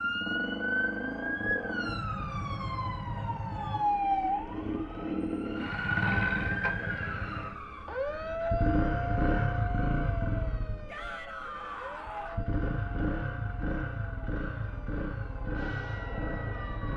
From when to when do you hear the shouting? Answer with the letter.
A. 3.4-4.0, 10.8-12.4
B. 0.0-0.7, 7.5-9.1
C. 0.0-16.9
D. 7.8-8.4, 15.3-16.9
A.